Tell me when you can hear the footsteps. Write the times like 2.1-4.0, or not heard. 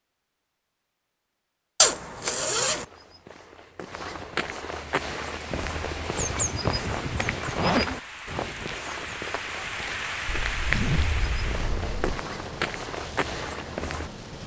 2.6-14.1.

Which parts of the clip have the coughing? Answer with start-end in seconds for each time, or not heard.
not heard.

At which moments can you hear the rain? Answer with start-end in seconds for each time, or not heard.
4.7-14.4.